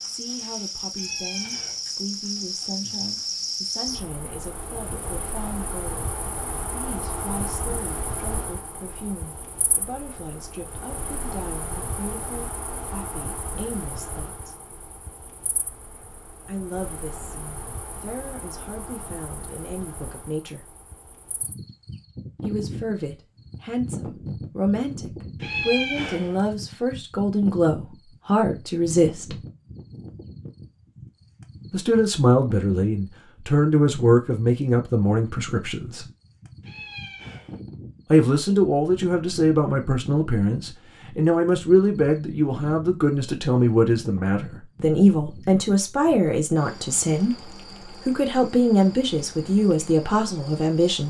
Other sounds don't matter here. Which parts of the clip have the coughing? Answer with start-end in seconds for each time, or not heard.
not heard.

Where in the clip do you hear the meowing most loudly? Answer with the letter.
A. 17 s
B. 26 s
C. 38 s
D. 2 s
B.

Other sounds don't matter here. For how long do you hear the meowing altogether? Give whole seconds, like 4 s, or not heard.
3 s.